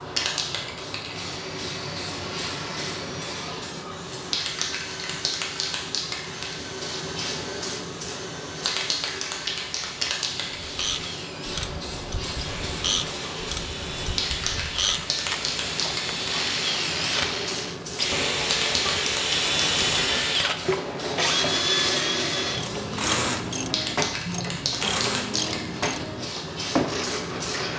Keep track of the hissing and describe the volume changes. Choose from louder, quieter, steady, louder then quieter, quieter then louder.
steady.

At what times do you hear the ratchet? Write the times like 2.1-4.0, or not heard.
10.6-17.8, 22.4-27.7.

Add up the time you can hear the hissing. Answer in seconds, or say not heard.
28 s.